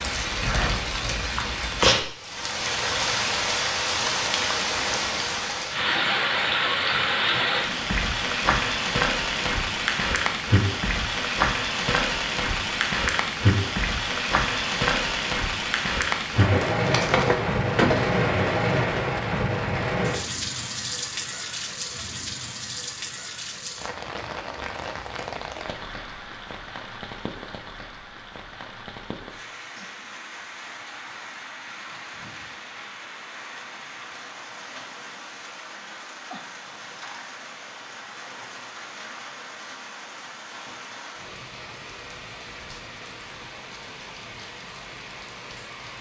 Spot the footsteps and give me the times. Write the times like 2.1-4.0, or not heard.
not heard.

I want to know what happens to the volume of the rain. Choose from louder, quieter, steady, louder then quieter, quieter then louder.
quieter.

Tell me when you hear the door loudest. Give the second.
18 s.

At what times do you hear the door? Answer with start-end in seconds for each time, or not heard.
16.4-18.2.